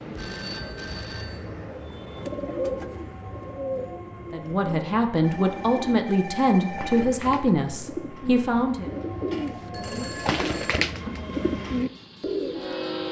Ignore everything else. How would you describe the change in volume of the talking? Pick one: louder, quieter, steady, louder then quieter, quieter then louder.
steady.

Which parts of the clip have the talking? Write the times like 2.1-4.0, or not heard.
4.3-8.9.